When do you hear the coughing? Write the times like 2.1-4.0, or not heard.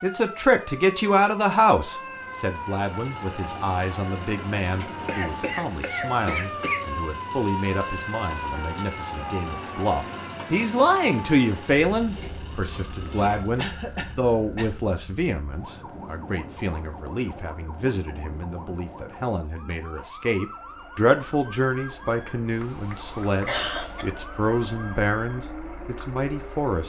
5.0-6.8, 13.6-14.8, 22.6-24.1.